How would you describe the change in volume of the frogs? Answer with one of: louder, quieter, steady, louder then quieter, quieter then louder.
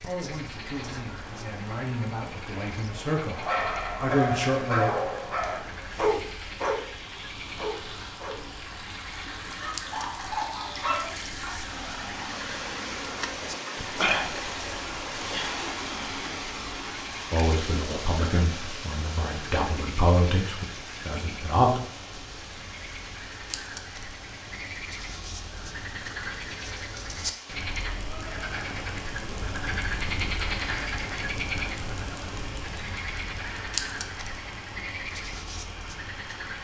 louder.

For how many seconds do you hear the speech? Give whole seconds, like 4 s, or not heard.
9 s.